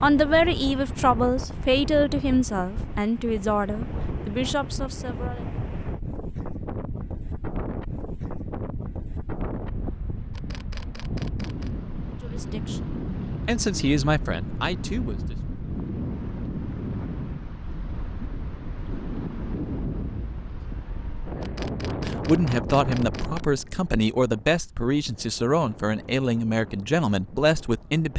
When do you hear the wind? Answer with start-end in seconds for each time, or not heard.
0.0-28.1.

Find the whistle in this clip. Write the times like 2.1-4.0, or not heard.
not heard.